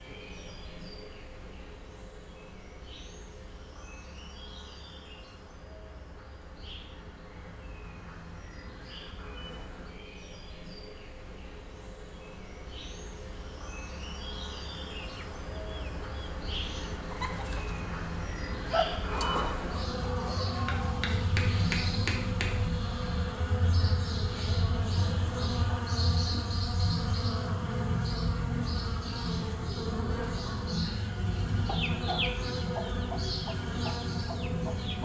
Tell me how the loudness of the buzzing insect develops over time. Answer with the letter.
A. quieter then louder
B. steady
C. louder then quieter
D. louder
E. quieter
D.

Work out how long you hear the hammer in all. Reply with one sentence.
You can hear the hammer for 2 seconds altogether.